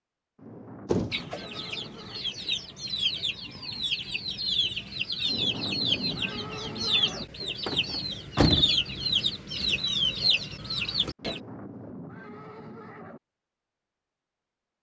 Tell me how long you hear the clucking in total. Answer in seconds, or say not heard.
10 s.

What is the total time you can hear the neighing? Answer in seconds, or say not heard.
6 s.